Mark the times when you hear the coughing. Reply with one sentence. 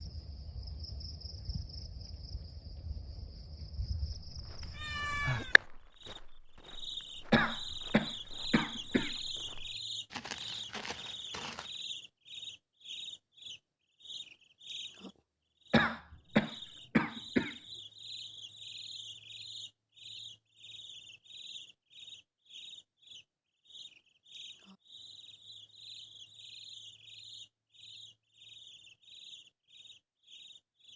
You can hear the coughing from 7.3 to 9.1 s and from 15.7 to 17.6 s.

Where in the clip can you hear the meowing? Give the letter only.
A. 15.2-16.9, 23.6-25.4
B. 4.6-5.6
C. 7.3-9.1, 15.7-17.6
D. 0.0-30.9
B.